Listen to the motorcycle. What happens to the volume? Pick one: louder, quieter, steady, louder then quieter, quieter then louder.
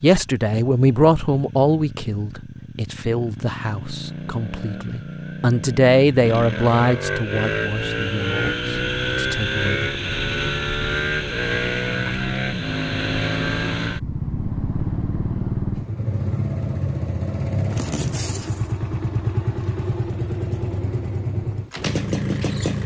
louder.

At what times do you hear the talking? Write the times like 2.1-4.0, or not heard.
0.0-9.9.